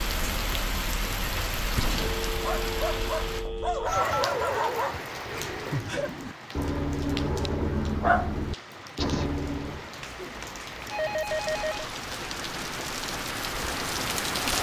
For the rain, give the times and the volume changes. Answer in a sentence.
The rain can be heard from 0.0 to 14.5 s, getting quieter then louder.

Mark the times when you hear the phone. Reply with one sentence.
You can hear the phone from 1.9 to 4.2 s and from 10.0 to 11.8 s.